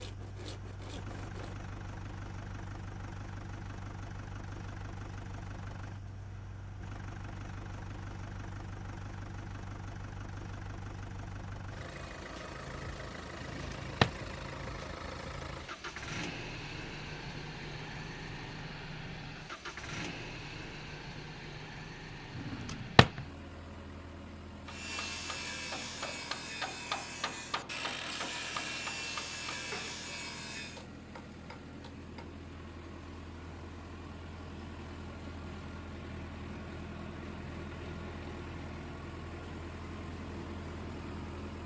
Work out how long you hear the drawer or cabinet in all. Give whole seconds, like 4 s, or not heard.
2 s.